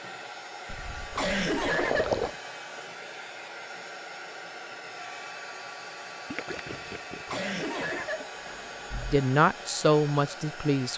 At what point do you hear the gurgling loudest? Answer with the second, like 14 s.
2 s.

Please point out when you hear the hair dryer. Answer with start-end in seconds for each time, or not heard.
0.0-10.9.